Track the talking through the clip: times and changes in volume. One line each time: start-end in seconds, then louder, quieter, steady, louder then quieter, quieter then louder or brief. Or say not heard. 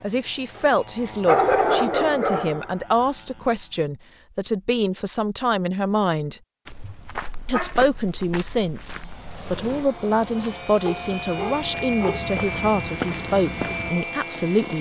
0.0-6.4 steady
7.5-14.7 steady.